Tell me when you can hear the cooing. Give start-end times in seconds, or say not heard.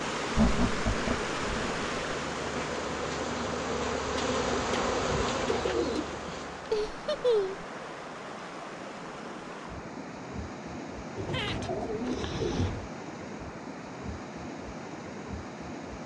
4.2-6.1, 11.2-12.8.